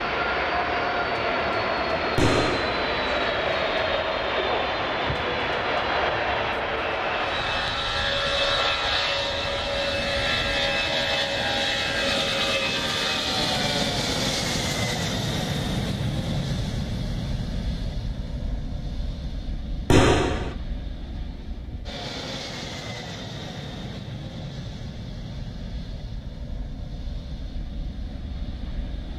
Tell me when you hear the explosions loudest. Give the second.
20 s.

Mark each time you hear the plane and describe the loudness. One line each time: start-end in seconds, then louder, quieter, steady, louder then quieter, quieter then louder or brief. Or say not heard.
0.0-29.1 quieter.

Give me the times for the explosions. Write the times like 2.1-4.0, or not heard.
2.1-2.8, 19.9-20.6.